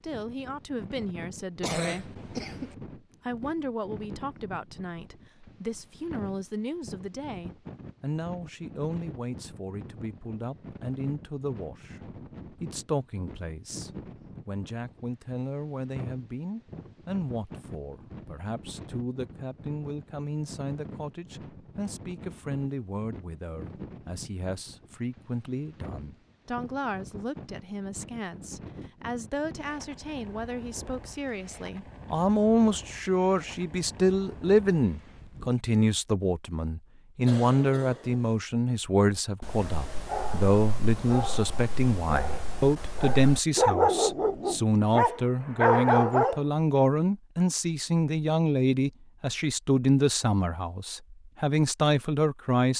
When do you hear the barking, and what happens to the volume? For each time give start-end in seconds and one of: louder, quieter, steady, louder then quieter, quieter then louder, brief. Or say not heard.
39.1-46.5 louder.